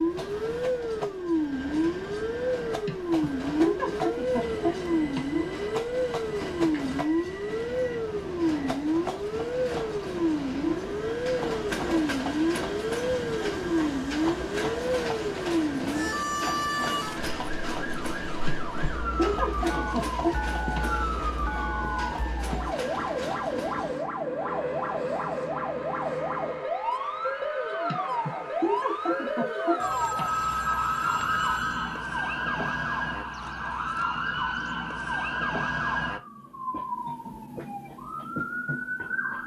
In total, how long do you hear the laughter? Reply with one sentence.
You can hear the laughter for 7 seconds altogether.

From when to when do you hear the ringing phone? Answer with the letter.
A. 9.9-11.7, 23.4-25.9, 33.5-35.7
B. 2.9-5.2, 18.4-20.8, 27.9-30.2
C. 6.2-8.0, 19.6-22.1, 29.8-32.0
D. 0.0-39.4
C.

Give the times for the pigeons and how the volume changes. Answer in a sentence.
The pigeons can't be heard in this clip.